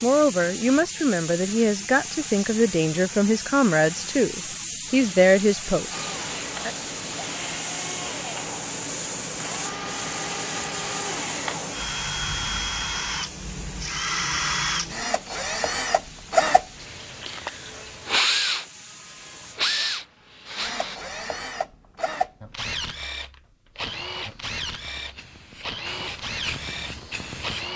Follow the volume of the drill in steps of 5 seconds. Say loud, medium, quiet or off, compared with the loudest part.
off, medium, loud, loud, medium, medium.